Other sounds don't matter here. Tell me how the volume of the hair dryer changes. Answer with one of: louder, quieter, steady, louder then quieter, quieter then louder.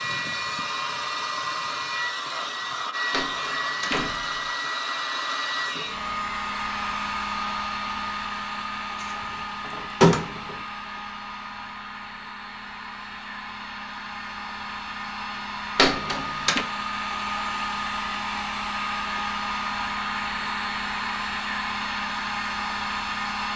quieter then louder.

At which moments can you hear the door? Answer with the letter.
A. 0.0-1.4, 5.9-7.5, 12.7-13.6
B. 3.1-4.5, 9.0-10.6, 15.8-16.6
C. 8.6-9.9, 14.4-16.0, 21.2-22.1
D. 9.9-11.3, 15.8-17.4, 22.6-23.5
B.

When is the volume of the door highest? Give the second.
10 s.